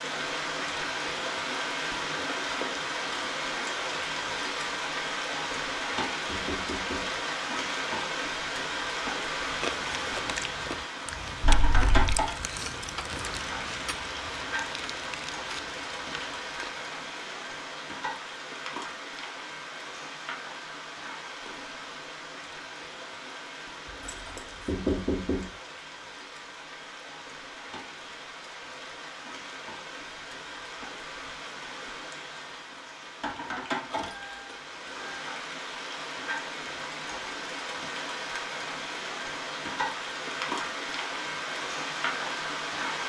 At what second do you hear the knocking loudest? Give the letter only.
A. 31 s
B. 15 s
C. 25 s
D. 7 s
C.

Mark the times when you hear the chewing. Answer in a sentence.
You can hear the chewing from 9.4 to 16.9 s.